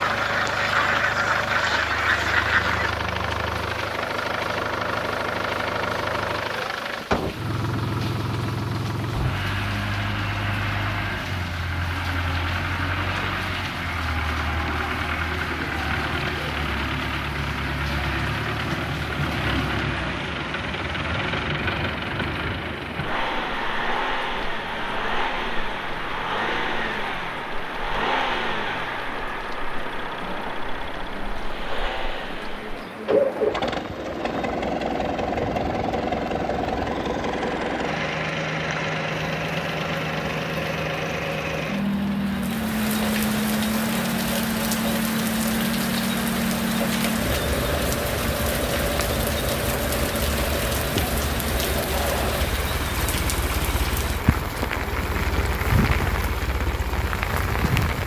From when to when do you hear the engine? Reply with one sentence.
The engine can be heard from 0.0 to 58.0 s.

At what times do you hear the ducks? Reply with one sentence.
The ducks can be heard from 0.0 to 3.0 s.